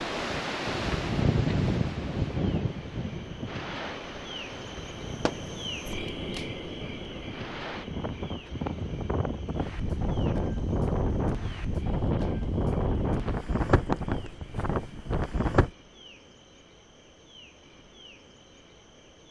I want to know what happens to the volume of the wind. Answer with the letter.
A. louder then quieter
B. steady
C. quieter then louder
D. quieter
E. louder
C.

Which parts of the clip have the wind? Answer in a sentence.
The wind can be heard from 0.0 to 15.7 s.